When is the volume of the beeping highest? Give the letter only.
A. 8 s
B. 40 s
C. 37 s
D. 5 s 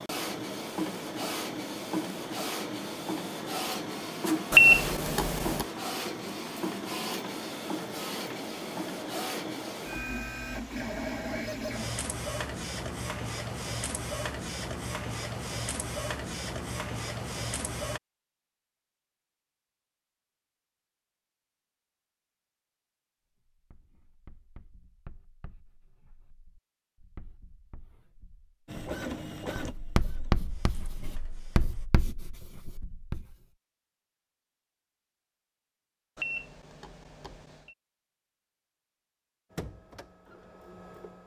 D.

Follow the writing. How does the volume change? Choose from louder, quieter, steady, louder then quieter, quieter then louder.
louder then quieter.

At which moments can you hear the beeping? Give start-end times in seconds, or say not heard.
4.5-5.7, 36.1-37.8.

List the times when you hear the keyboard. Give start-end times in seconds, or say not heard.
not heard.